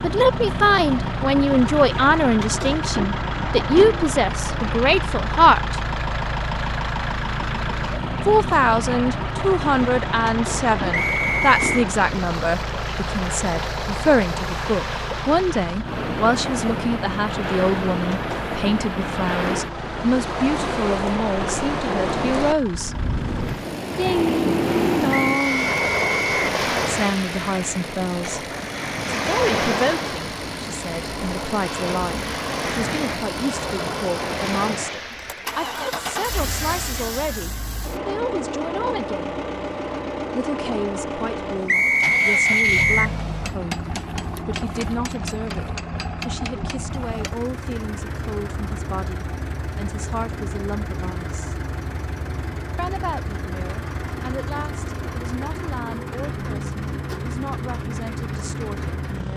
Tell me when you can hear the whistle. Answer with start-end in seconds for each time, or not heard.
10.9-11.8, 25.1-26.4, 41.6-43.1.